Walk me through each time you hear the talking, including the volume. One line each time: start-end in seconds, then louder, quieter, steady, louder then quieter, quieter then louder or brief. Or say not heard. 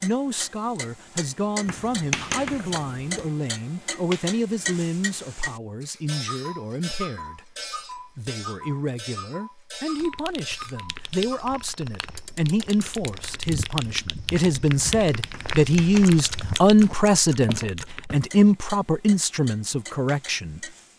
0.0-20.7 louder.